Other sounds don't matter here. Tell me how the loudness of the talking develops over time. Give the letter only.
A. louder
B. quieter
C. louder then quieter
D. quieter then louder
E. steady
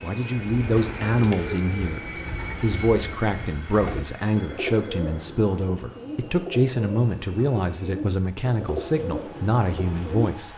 E.